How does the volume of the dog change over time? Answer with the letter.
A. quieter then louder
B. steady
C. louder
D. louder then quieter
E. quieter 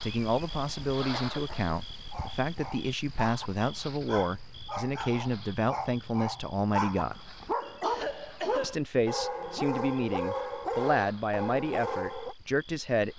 C.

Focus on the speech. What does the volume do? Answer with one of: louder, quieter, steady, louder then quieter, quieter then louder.
steady.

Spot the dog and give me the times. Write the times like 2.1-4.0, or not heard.
1.9-12.3.